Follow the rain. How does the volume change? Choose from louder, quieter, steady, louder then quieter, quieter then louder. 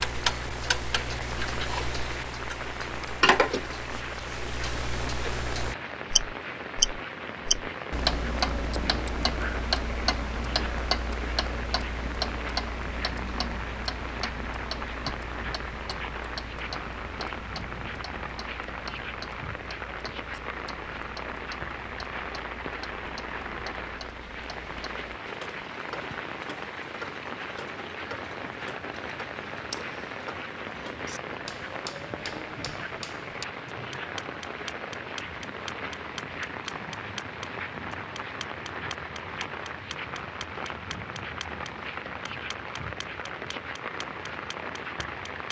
steady.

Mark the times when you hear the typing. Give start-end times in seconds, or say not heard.
not heard.